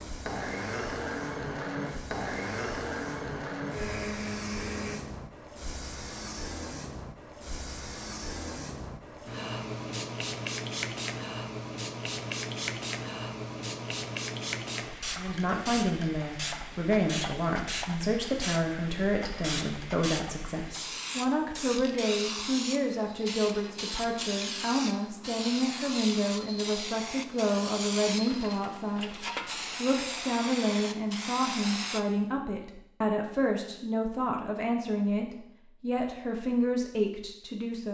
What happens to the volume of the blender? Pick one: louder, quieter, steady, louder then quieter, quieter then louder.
steady.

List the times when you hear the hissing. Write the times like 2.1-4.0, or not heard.
0.0-32.0.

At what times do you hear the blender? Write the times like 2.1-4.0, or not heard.
0.1-5.0.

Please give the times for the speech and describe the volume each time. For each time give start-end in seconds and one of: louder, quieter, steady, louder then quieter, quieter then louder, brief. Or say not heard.
15.2-37.8 steady.